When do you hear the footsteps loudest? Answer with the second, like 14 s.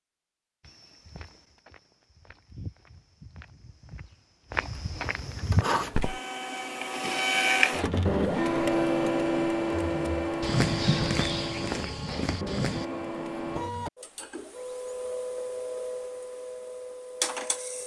11 s.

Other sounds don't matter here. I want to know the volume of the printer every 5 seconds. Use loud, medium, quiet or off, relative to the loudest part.
off, loud, medium, medium.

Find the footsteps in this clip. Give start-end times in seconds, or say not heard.
0.6-6.2, 10.1-12.8.